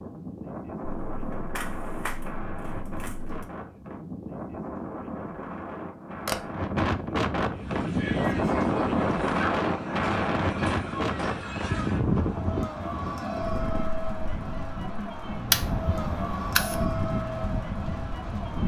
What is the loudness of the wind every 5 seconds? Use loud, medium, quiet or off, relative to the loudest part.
medium, loud, loud, medium.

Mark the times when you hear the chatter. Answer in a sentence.
You can hear the chatter from 7.5 to 18.6 s.